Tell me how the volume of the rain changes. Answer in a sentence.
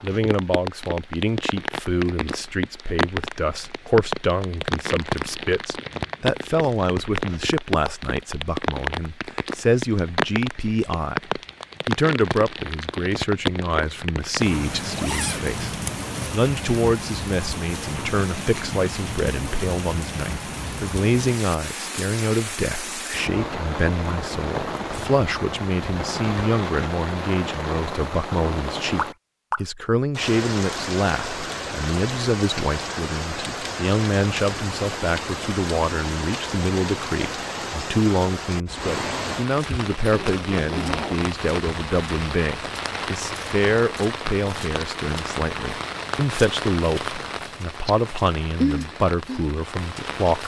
The volume of the rain stays about the same.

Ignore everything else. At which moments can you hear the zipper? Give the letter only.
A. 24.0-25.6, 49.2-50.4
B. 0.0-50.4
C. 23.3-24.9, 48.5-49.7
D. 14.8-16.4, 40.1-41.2
D.